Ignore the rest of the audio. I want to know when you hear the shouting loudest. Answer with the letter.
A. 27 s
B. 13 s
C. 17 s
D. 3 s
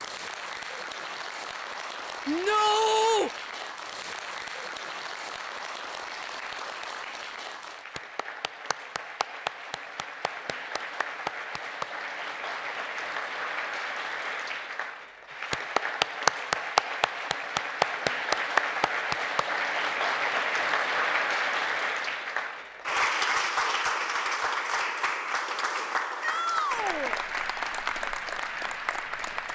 D.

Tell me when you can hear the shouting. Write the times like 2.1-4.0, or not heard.
2.2-3.3, 26.2-27.2.